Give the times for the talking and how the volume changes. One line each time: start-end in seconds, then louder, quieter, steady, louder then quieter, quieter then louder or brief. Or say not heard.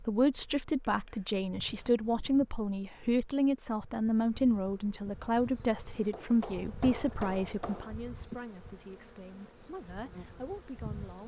0.0-11.2 quieter.